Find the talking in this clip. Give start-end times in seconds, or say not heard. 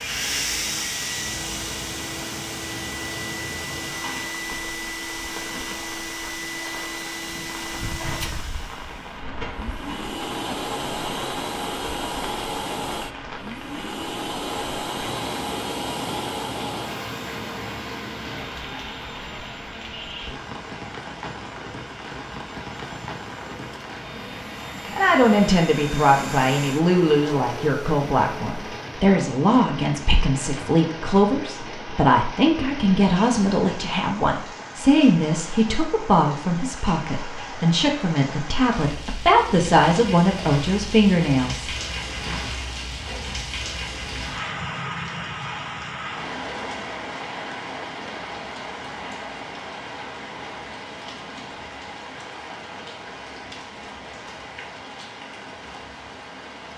24.9-42.4.